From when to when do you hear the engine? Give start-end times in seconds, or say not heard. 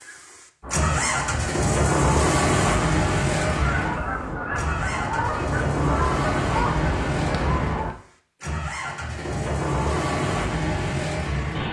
0.0-11.6.